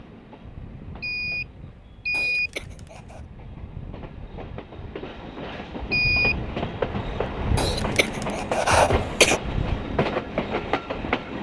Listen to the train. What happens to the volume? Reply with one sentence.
The volume of the train goes up.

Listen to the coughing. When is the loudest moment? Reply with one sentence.
The volume of the coughing peaks at 9 seconds.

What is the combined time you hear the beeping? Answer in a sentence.
The beeping can be heard for 2 seconds in total.